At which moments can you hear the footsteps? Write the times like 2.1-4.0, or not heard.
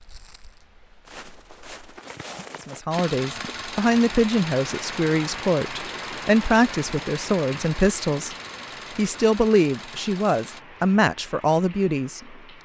0.0-2.8.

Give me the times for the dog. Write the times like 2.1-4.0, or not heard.
not heard.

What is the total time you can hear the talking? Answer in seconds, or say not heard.
9 s.